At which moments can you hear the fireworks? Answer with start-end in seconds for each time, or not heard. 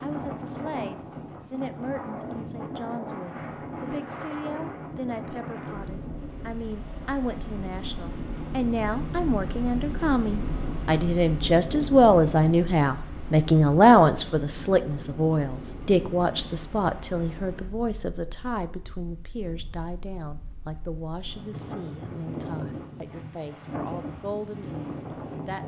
not heard.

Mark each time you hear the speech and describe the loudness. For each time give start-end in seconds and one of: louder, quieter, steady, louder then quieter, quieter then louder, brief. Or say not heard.
0.0-25.6 louder then quieter.